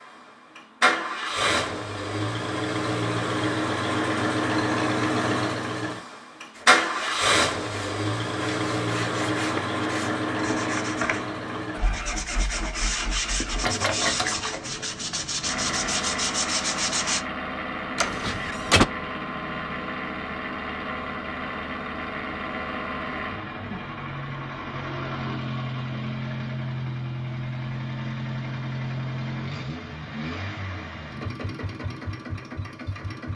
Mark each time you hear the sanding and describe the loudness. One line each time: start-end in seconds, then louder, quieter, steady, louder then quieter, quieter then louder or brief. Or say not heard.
6.5-17.2 louder.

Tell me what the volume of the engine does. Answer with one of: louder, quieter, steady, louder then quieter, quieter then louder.
quieter.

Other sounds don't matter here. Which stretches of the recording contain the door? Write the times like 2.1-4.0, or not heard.
17.9-18.9.